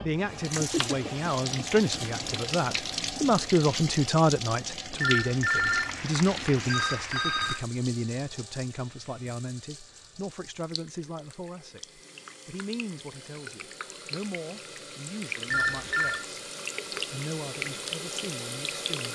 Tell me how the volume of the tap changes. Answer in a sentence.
The volume of the tap goes down, then up.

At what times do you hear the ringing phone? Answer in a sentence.
You can hear the ringing phone from 5.0 to 7.7 s and from 15.5 to 16.2 s.